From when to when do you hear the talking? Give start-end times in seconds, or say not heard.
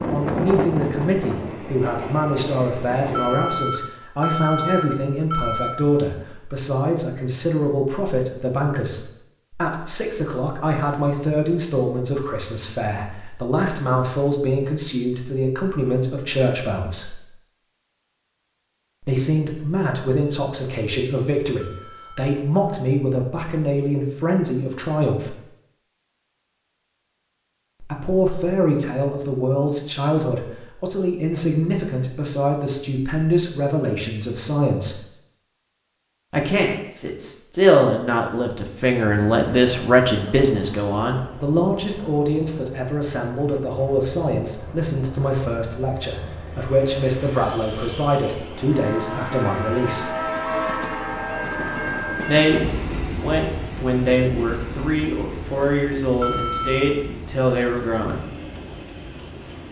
0.1-17.2, 19.1-25.4, 27.8-35.0, 36.3-50.1, 52.2-58.2.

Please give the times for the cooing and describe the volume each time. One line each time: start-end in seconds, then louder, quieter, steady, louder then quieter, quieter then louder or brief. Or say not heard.
not heard.